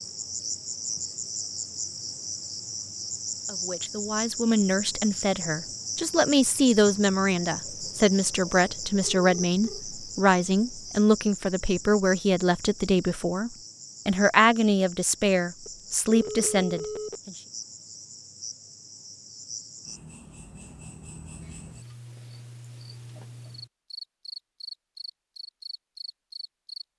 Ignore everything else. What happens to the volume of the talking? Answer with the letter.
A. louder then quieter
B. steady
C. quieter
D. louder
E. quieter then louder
B.